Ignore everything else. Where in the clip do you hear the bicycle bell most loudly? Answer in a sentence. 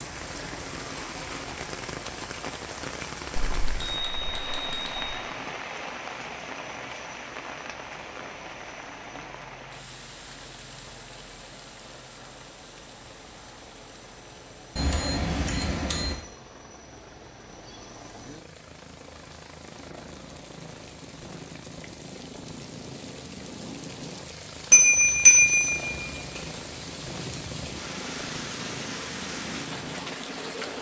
The loudest moment of the bicycle bell is at 25 seconds.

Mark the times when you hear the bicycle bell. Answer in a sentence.
You can hear the bicycle bell from 3.4 to 5.2 s, from 14.8 to 16.1 s and from 24.7 to 26.4 s.